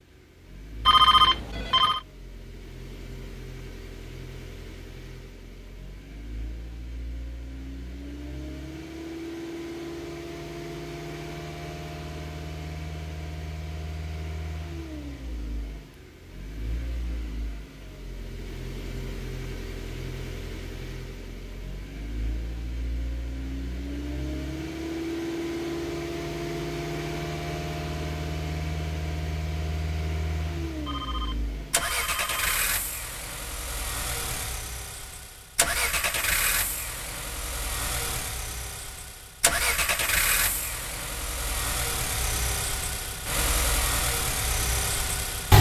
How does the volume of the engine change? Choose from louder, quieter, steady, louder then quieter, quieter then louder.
louder.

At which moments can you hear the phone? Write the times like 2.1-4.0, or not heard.
0.8-2.0, 30.9-32.6.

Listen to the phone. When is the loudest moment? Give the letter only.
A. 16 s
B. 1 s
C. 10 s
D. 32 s
B.